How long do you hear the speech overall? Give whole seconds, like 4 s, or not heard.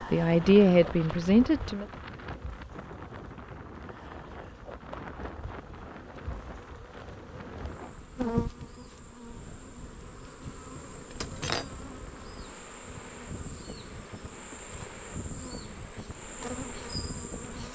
2 s.